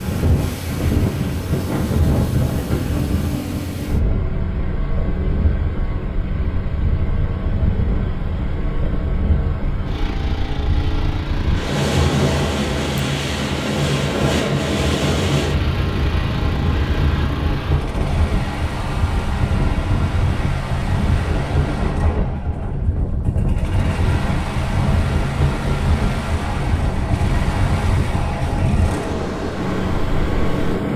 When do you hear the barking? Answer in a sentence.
You can't hear the barking here.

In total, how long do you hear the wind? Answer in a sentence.
You can hear the wind for 31 seconds altogether.